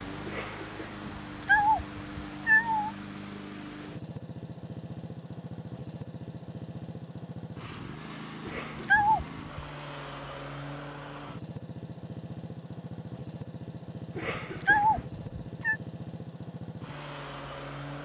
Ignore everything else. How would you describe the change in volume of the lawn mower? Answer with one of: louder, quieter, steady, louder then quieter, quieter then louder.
steady.